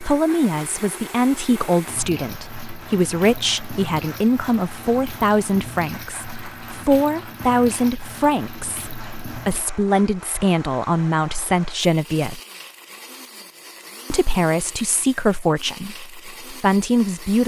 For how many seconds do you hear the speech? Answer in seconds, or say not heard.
16 s.